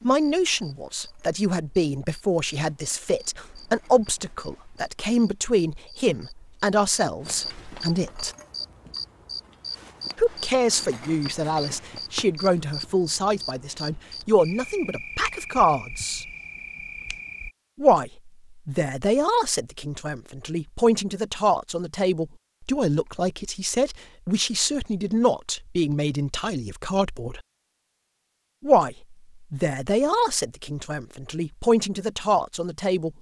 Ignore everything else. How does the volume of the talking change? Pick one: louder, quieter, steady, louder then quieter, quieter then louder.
steady.